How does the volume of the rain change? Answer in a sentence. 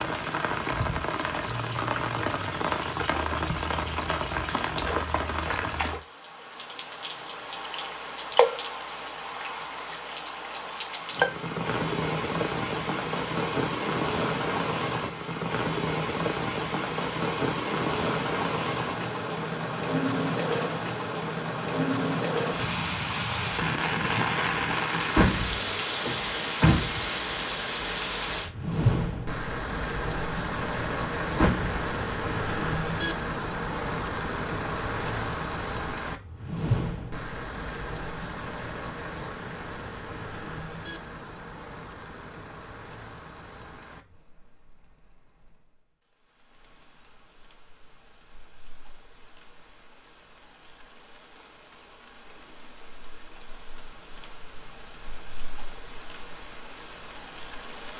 The volume of the rain goes down.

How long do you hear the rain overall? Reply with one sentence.
The rain can be heard for 58 seconds in total.